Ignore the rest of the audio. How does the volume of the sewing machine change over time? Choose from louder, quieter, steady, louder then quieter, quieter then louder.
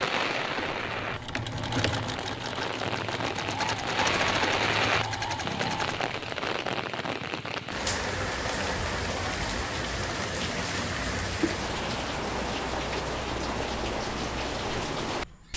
steady.